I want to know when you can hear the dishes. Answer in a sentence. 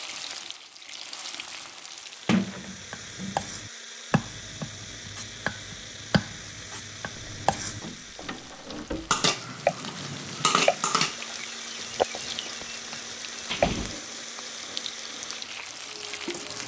The dishes can be heard from 9.1 to 11.2 s.